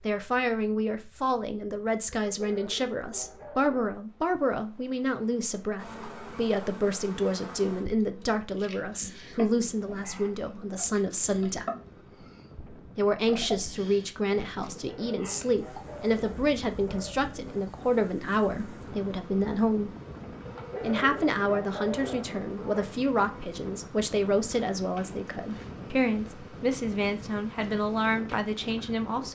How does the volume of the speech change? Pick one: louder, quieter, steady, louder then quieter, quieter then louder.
steady.